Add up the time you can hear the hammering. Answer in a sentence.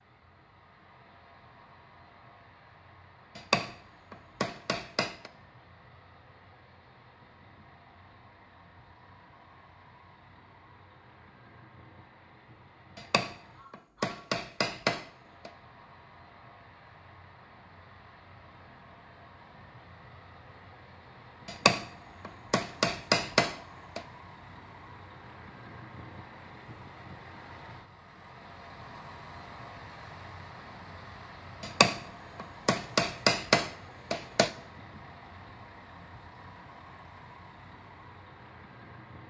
You can hear the hammering for 10 seconds altogether.